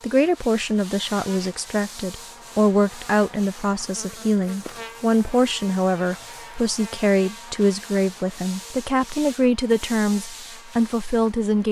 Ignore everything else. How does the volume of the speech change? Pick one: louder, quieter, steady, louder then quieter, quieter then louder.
steady.